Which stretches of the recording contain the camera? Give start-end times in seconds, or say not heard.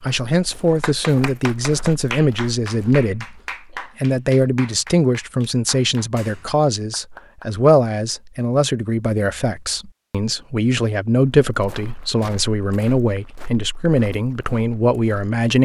not heard.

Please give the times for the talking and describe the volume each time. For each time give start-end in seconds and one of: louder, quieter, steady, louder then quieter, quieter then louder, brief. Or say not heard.
0.1-15.6 steady.